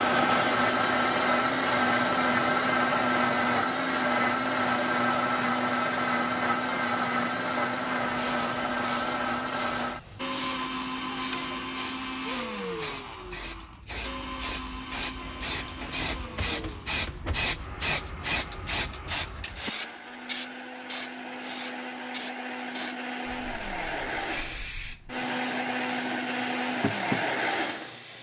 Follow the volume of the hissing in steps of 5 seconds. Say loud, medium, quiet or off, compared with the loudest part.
quiet, quiet, medium, loud, medium, medium.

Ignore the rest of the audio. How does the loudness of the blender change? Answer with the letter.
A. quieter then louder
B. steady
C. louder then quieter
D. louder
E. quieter
A.